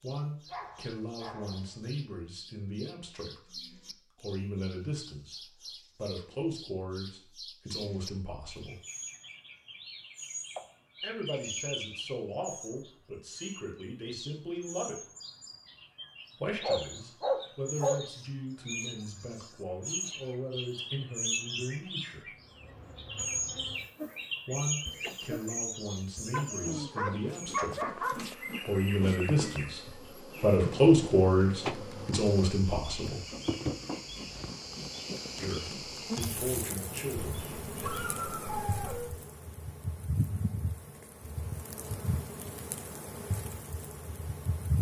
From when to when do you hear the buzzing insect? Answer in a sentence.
The buzzing insect can be heard from 22.4 to 44.7 s.